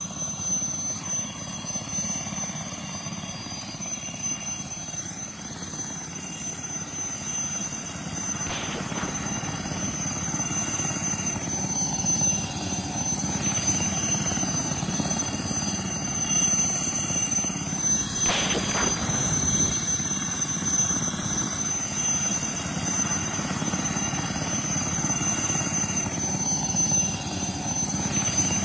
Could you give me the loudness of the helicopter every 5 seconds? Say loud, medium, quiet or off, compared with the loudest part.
medium, medium, loud, loud, loud, loud.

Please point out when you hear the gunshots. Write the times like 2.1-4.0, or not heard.
8.2-9.9, 18.1-19.8.